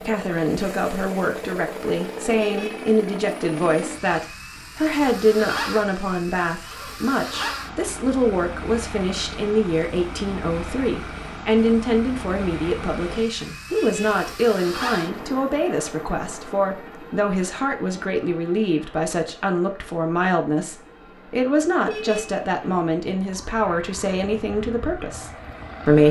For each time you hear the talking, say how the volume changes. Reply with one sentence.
The talking can be heard from 0.0 to 26.0 s, at a steady volume.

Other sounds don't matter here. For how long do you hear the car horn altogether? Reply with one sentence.
You can hear the car horn for 2 seconds altogether.